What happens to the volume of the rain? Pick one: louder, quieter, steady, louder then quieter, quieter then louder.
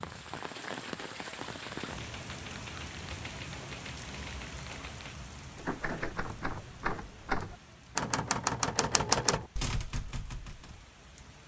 quieter.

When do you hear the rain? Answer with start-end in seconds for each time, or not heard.
0.0-11.4.